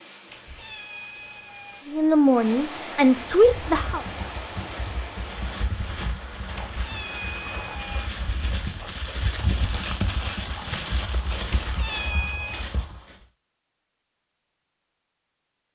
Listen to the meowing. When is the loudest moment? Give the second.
12 s.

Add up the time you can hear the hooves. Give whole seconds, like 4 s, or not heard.
10 s.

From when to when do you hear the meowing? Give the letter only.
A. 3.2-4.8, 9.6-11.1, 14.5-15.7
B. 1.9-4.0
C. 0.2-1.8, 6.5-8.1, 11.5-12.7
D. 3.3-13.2
C.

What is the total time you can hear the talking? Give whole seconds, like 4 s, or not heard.
2 s.